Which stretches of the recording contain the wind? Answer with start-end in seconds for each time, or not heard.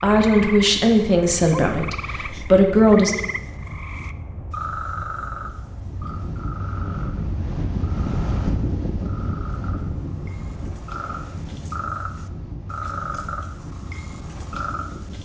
0.0-15.2.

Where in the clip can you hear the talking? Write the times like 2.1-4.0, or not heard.
0.0-3.1.